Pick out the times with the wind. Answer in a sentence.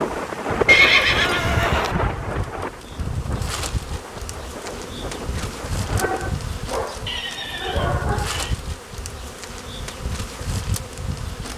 You can hear the wind from 0.0 to 6.3 s.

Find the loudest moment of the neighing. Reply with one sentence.
The loudest moment of the neighing is at 1 second.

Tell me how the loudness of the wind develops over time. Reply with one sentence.
The volume of the wind goes down.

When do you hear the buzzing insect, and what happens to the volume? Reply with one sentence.
You can hear the buzzing insect from 0.0 to 11.5 s, at a steady volume.